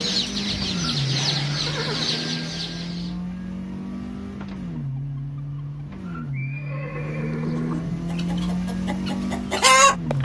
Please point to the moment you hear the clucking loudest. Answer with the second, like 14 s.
10 s.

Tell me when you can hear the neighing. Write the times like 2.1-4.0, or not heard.
1.4-2.2, 6.3-8.1.